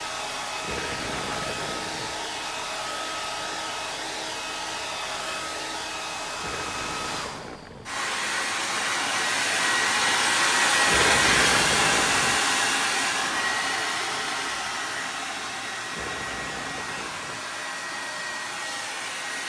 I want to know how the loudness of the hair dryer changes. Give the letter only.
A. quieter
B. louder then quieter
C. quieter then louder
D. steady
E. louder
B.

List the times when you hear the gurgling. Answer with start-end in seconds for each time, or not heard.
0.6-2.2, 6.3-8.0, 10.8-12.4, 15.9-17.4.